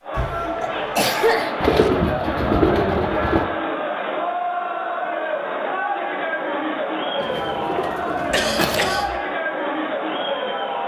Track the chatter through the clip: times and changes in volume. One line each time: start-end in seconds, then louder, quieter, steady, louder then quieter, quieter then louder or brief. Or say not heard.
0.0-10.8 steady.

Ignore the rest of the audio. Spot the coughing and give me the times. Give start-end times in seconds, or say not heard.
0.1-1.9, 8.3-9.2.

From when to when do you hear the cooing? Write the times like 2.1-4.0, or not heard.
1.6-3.5, 7.2-9.1.